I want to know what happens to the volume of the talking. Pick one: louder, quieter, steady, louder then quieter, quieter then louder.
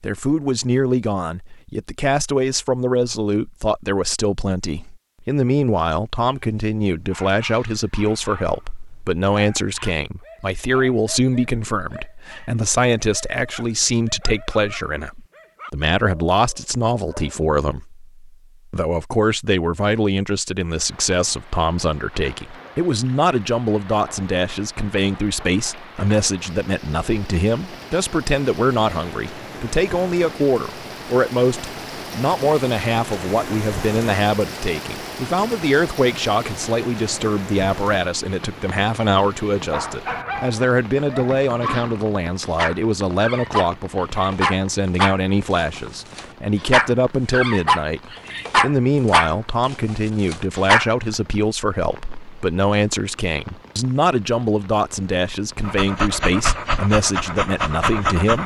steady.